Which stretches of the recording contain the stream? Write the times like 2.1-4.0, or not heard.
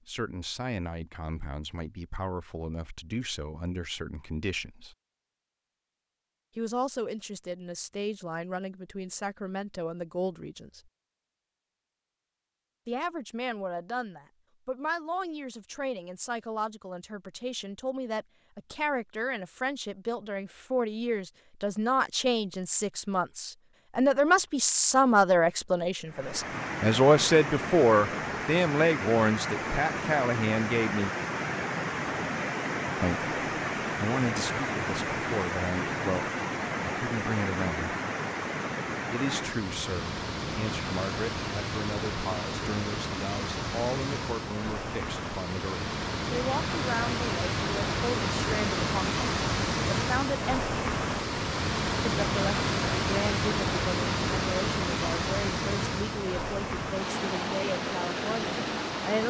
26.1-59.2.